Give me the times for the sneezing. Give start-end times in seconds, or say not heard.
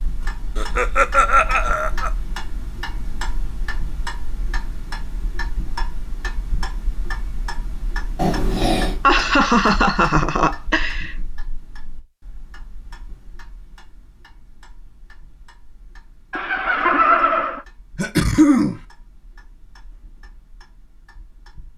8.2-9.0, 17.9-18.8.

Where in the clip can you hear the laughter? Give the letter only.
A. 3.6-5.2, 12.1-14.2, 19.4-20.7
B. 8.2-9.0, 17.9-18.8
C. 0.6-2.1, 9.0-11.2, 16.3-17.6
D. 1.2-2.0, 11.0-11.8
C.